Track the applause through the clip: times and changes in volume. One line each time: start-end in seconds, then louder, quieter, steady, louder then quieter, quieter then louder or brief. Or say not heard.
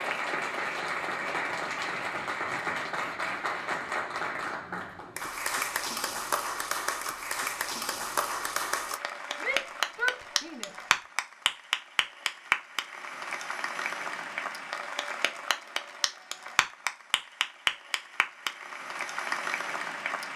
0.0-20.3 steady.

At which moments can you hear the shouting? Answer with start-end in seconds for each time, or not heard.
9.4-10.8.